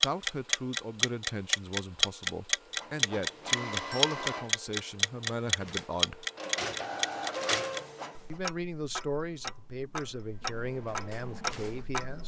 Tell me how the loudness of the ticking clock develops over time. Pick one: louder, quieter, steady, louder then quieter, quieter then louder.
quieter.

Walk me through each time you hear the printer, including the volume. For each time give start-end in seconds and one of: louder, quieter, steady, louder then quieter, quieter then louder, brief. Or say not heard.
2.6-8.3 quieter then louder
10.6-12.1 brief.